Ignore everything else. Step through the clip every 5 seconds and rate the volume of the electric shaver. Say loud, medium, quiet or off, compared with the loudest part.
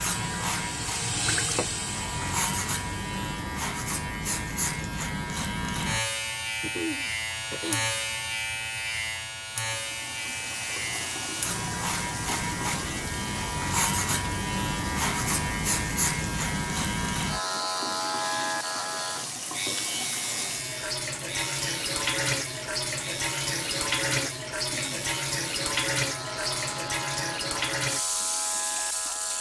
loud, loud, loud, loud, medium, medium.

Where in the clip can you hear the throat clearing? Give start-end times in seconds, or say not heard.
6.6-8.0, 24.1-25.1.